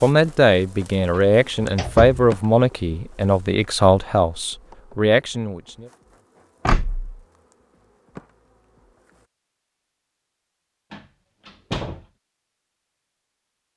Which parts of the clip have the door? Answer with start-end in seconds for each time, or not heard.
0.9-2.8, 6.7-7.2, 10.9-12.1.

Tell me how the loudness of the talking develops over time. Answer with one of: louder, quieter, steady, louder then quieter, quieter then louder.
steady.